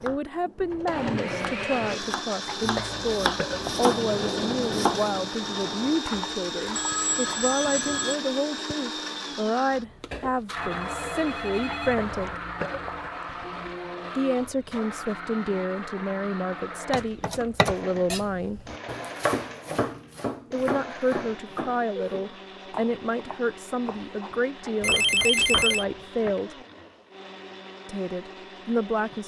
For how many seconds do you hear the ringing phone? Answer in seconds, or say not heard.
4 s.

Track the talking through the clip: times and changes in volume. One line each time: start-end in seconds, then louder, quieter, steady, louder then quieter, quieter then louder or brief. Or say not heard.
0.0-12.4 steady
14.2-18.6 steady
20.5-26.6 steady
27.9-29.2 brief.